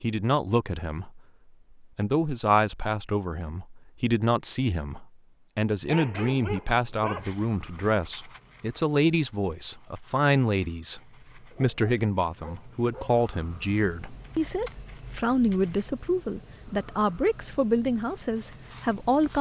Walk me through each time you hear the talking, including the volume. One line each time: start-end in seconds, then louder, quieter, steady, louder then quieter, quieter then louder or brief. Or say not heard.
0.0-1.2 brief
1.8-19.3 steady.